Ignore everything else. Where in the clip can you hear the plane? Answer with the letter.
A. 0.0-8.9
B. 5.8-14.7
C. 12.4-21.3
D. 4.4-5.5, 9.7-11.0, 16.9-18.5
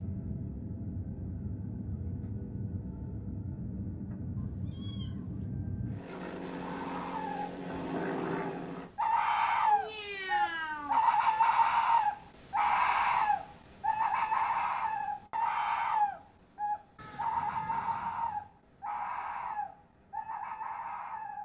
A.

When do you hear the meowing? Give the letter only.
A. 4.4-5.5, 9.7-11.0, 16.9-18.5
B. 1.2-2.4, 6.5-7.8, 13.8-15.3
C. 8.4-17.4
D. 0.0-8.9
A.